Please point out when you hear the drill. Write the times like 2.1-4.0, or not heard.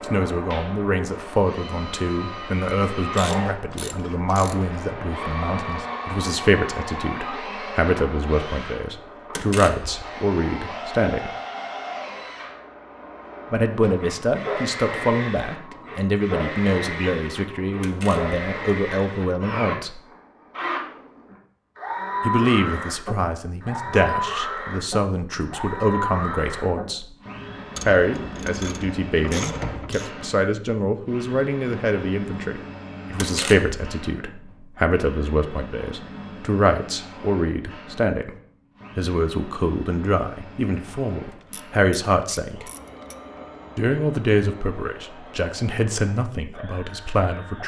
0.0-47.6.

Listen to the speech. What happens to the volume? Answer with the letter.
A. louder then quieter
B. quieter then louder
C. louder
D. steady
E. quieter
D.